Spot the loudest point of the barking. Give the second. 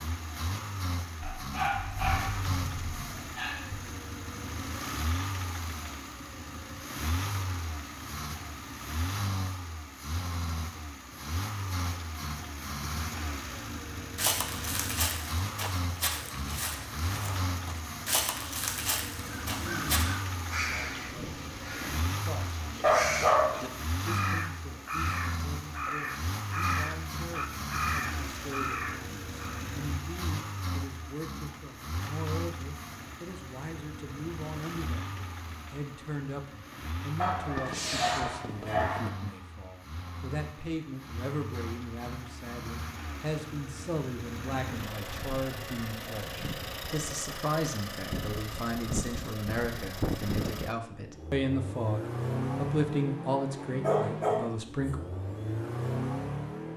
23 s.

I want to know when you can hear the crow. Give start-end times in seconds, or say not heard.
19.5-29.6.